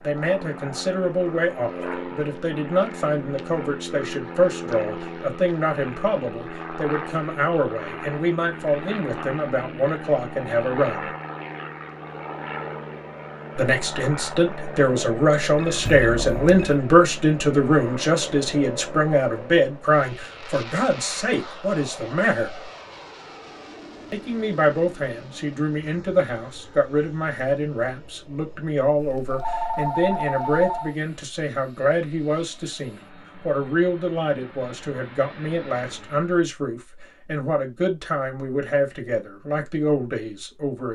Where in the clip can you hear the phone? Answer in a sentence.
You can hear the phone from 15.6 to 16.8 s and from 29.0 to 30.9 s.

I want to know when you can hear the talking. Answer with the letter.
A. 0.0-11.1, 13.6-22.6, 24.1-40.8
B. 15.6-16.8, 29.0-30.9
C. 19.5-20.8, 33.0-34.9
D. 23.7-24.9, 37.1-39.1
A.